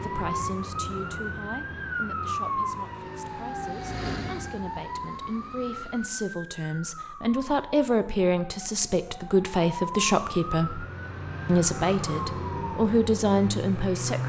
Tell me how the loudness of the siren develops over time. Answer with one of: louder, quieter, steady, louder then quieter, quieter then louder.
quieter then louder.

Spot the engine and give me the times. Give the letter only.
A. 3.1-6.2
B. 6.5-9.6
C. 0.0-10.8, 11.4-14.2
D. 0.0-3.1
A.